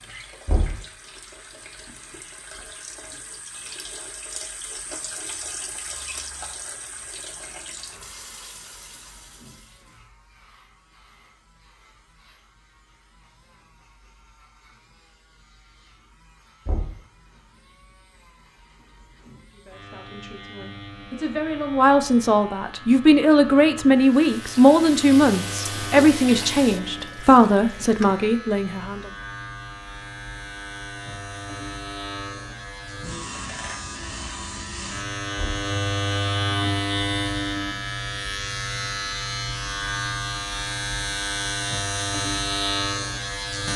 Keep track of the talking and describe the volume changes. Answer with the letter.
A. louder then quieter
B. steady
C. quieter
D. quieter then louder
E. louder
E.